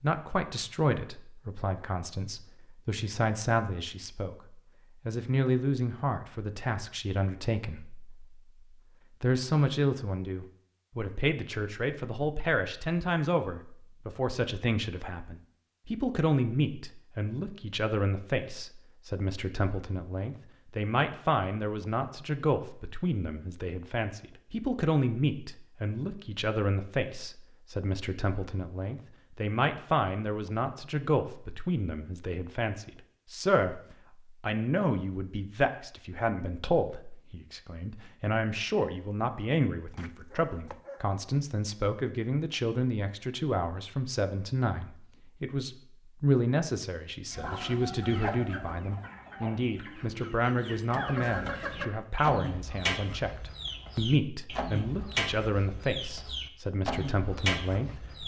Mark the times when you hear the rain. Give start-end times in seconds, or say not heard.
not heard.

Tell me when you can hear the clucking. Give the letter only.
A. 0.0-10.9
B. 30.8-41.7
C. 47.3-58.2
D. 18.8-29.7
C.